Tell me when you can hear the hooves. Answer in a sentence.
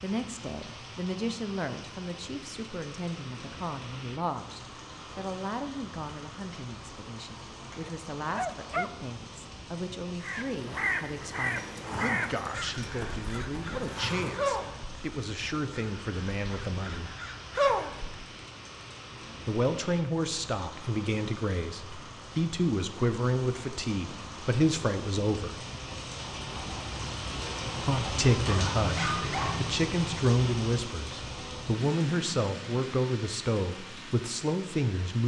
The hooves can be heard from 11.3 to 14.6 s.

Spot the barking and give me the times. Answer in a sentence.
You can hear the barking from 7.8 to 8.9 s and from 28.4 to 29.7 s.